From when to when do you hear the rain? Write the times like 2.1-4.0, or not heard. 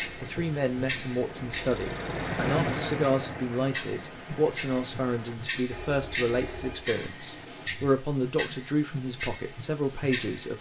0.0-5.3.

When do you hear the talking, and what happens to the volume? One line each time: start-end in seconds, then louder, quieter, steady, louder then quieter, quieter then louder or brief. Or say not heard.
0.1-10.5 steady.